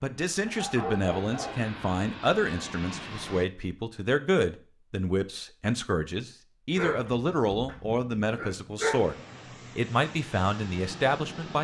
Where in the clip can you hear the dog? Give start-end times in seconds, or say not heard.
0.5-1.6, 6.8-9.1.